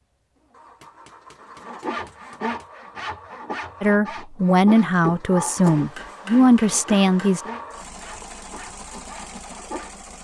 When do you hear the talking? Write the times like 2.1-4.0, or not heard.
3.8-7.4.